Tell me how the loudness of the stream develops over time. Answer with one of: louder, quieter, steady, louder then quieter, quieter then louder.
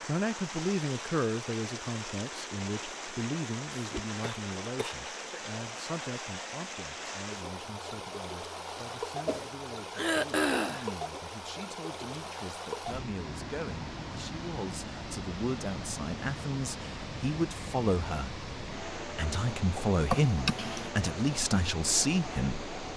steady.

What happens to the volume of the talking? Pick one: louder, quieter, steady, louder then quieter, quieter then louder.
quieter then louder.